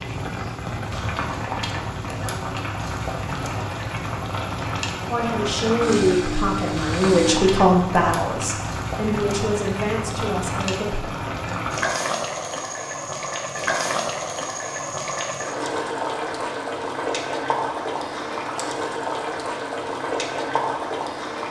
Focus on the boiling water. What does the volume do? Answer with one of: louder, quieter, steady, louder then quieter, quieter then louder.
steady.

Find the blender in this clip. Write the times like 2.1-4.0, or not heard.
5.8-7.4.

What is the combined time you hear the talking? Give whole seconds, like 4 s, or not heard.
6 s.